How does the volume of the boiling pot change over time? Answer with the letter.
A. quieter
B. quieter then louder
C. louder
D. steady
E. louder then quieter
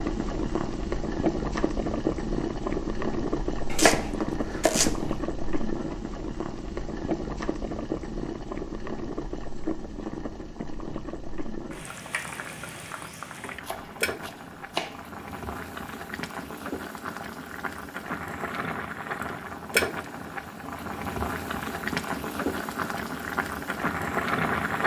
B.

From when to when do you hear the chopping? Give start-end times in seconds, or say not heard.
3.7-5.1, 13.6-15.1.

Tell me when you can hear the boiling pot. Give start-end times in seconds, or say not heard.
0.0-24.8.